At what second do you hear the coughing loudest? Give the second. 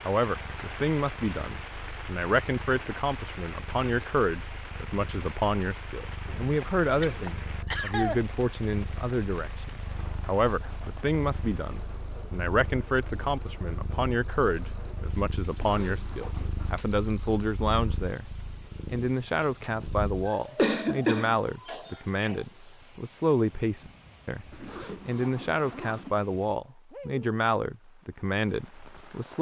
21 s.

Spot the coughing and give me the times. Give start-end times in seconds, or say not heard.
6.2-8.2, 20.2-22.4.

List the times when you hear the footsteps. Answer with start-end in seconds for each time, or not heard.
not heard.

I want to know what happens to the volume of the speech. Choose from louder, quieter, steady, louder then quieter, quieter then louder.
steady.